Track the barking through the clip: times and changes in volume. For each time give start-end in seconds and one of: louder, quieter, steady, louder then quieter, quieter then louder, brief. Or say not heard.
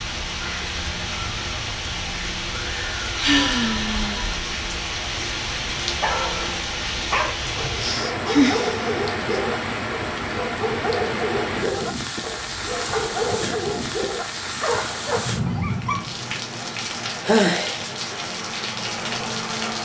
6.0-16.1 steady.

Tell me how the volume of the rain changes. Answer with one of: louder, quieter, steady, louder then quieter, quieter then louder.
steady.